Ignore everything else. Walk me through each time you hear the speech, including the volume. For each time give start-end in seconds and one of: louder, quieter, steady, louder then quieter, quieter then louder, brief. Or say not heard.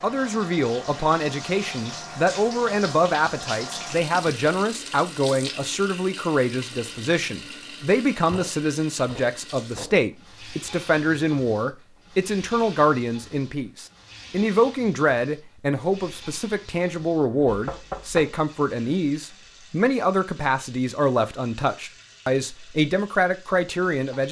0.0-24.2 steady.